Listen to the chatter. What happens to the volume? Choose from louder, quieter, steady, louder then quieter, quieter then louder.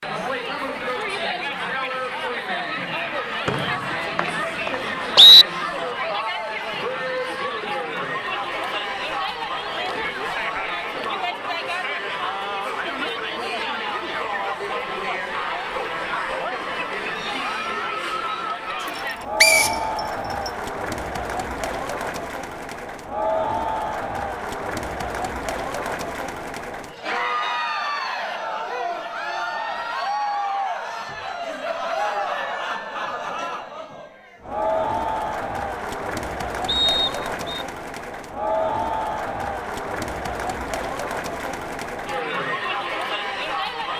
steady.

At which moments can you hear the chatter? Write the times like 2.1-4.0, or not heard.
0.0-43.9.